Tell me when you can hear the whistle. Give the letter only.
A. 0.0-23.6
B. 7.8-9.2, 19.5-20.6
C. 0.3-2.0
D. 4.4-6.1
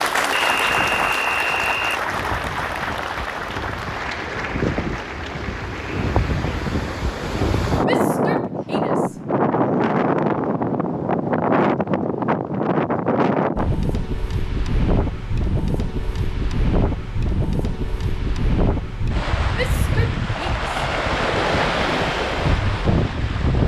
C.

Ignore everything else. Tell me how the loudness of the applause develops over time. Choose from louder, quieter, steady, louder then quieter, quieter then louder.
quieter.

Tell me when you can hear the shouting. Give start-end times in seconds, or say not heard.
7.8-9.2, 19.5-20.6.